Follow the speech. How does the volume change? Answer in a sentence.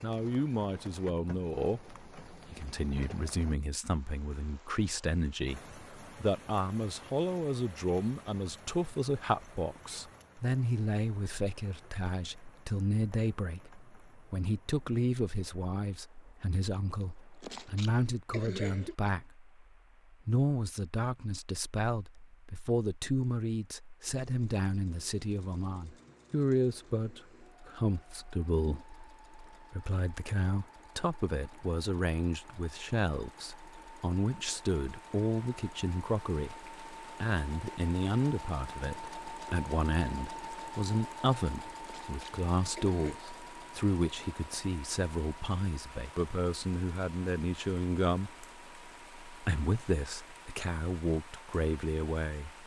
The loudness of the speech stays about the same.